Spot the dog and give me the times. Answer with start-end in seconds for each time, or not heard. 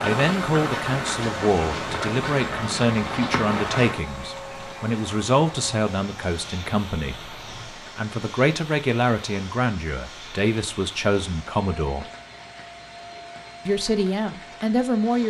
not heard.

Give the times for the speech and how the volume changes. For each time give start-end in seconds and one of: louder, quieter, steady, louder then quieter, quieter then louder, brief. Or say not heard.
0.0-12.1 steady
13.7-15.2 brief.